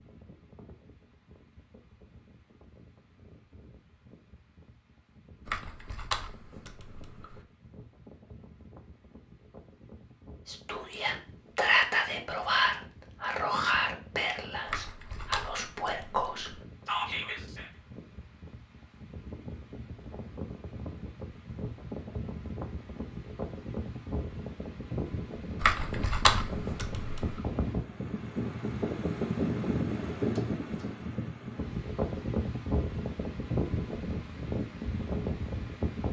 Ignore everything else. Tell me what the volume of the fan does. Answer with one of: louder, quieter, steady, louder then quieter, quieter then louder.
louder.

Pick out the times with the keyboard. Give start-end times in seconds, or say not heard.
5.5-7.4, 14.7-16.6, 25.6-27.4.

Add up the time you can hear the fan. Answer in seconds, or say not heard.
36 s.